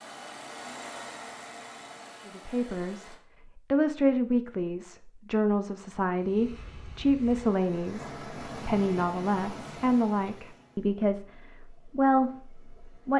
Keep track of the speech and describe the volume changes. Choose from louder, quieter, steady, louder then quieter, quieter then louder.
steady.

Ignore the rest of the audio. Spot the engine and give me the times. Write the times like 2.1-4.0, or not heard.
0.0-3.2.